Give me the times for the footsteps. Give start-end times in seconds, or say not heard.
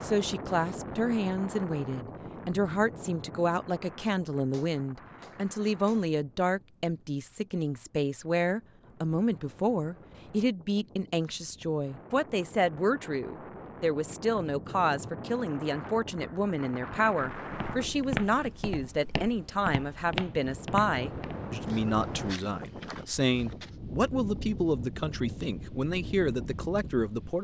17.4-23.8.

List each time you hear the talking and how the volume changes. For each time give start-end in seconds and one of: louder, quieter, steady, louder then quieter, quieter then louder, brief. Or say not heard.
0.0-27.3 steady.